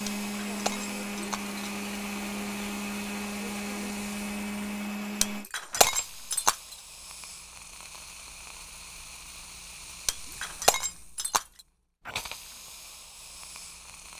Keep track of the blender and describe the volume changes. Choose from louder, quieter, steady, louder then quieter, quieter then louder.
steady.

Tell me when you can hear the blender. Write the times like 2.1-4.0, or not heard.
0.0-5.5.